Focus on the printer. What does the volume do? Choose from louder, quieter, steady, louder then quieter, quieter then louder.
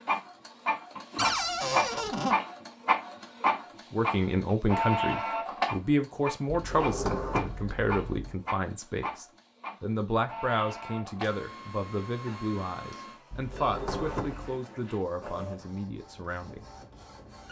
quieter.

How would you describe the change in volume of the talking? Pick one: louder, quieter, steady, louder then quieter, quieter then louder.
quieter.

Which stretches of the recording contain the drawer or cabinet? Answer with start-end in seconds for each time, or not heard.
1.1-2.4, 6.5-8.3, 13.3-14.6.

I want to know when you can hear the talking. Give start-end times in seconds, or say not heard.
3.9-16.6.